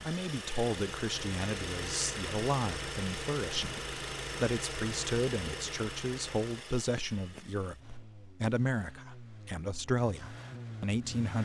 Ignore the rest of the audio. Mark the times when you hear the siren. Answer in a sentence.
You can't hear the siren here.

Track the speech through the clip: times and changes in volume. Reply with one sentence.
You can hear the speech from 0.0 to 11.3 s, at a steady volume.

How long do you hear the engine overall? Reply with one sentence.
You can hear the engine for 11 seconds altogether.